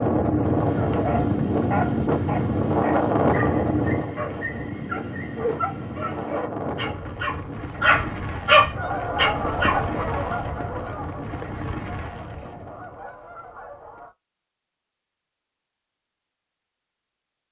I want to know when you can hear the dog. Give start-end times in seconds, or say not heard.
0.7-9.8.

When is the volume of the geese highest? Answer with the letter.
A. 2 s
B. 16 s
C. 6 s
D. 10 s
D.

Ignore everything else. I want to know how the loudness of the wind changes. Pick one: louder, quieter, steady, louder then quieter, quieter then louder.
quieter.